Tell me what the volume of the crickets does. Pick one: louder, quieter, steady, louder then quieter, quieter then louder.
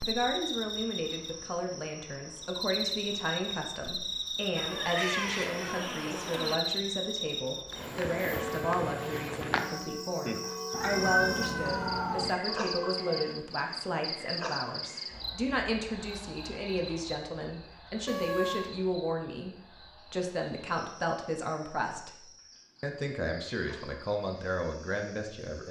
quieter.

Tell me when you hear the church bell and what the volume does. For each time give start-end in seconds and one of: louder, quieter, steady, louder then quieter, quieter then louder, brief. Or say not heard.
8.3-13.4 steady.